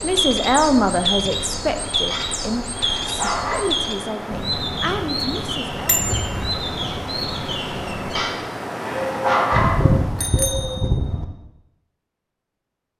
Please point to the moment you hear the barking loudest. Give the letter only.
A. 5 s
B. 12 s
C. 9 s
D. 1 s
C.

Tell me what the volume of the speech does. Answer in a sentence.
The loudness of the speech goes down.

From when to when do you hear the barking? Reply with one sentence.
You can hear the barking from 2.1 to 3.6 s and from 8.2 to 9.9 s.